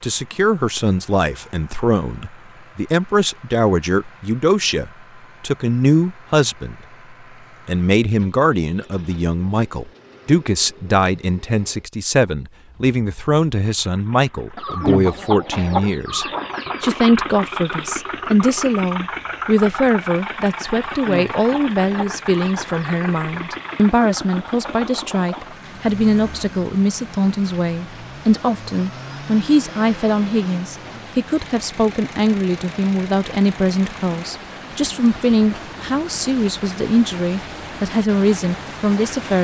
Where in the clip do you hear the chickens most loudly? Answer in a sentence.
The volume of the chickens peaks at 15 seconds.